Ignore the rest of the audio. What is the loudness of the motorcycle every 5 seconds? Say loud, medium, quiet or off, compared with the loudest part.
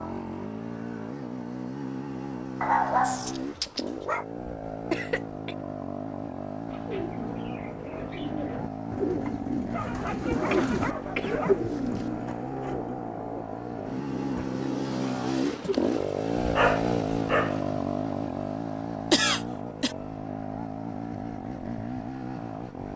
medium, medium, medium, loud, medium.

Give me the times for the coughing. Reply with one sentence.
The coughing can be heard from 4.9 to 5.5 s, from 10.5 to 12.1 s and from 19.1 to 19.9 s.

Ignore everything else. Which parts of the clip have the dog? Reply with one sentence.
The dog can be heard from 2.6 to 4.2 s, from 9.7 to 11.7 s and from 16.6 to 17.8 s.